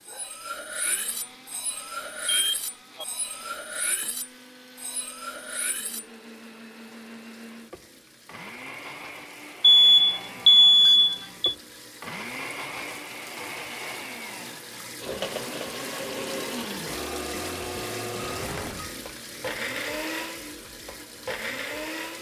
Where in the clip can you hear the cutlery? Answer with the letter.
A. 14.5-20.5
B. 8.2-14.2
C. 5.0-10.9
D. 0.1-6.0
D.